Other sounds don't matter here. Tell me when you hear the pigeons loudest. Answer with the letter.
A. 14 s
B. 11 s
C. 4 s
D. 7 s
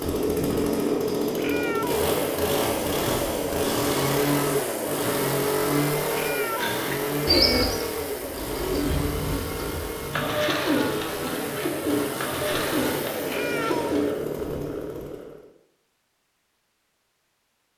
D.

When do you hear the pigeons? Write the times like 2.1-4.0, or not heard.
6.5-14.2.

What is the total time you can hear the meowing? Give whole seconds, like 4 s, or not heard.
3 s.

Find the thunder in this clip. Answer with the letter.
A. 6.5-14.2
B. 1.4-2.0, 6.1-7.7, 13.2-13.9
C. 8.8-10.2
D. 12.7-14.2
C.